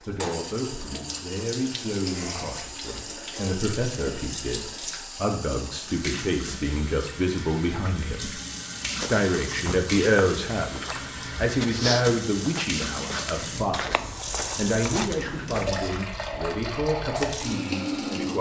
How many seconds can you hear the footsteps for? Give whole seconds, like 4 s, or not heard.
7 s.